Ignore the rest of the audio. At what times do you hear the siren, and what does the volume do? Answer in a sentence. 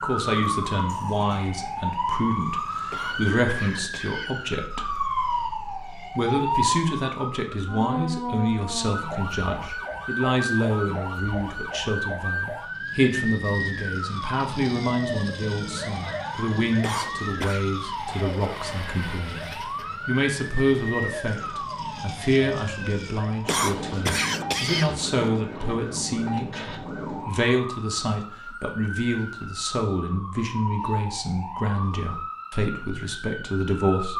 The siren can be heard from 0.0 to 34.1 s, getting quieter.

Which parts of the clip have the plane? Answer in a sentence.
You can't hear the plane here.